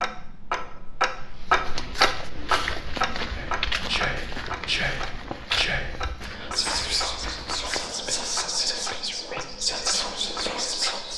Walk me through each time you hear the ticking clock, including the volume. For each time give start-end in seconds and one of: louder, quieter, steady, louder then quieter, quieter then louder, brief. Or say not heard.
0.0-11.1 quieter.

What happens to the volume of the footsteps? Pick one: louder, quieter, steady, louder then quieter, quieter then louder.
quieter.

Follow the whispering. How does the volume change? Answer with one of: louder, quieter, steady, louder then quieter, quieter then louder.
steady.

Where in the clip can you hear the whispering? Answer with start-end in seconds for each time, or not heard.
3.3-11.1.